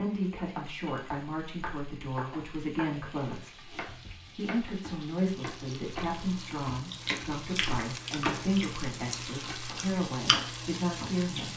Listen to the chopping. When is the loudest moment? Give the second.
8 s.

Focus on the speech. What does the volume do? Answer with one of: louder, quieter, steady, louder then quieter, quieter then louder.
steady.